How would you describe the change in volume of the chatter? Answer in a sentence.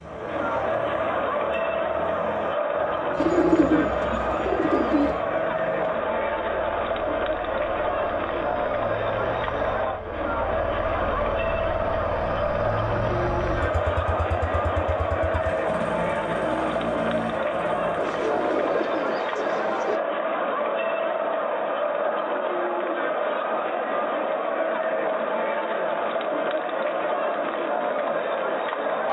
The loudness of the chatter stays about the same.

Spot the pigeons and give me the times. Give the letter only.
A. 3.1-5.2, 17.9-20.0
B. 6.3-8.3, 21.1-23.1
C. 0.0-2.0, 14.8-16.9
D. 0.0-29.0
A.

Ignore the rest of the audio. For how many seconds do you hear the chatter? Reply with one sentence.
You can hear the chatter for 29 seconds altogether.